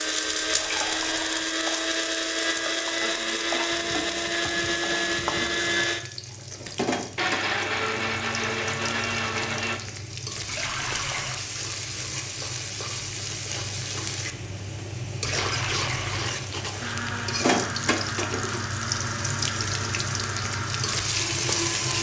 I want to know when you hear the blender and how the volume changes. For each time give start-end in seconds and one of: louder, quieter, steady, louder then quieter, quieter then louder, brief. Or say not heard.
0.0-9.8 steady
16.8-21.9 steady.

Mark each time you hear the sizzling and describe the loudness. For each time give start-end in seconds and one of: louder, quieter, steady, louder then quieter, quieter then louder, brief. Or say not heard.
0.0-21.9 louder.